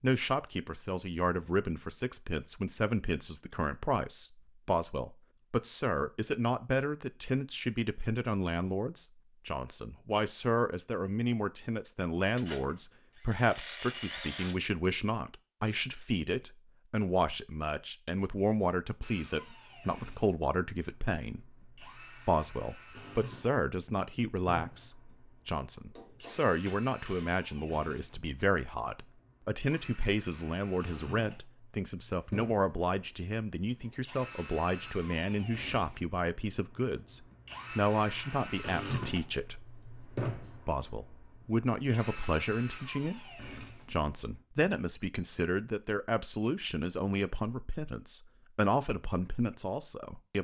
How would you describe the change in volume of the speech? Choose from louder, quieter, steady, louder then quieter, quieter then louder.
steady.